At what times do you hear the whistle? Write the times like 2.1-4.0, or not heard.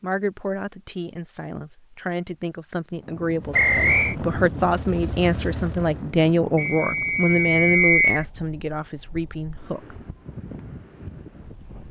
3.5-4.2, 6.5-8.2.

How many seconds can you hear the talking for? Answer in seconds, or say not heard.
10 s.